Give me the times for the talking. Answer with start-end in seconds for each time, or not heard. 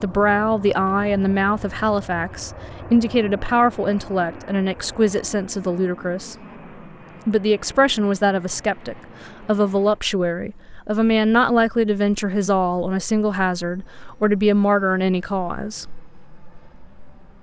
0.0-6.3, 7.2-15.8.